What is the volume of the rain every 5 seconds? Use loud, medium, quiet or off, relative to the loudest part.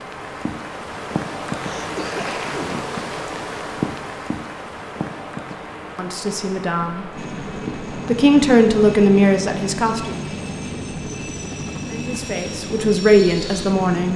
loud, medium, off.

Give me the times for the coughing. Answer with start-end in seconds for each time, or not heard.
1.6-2.9.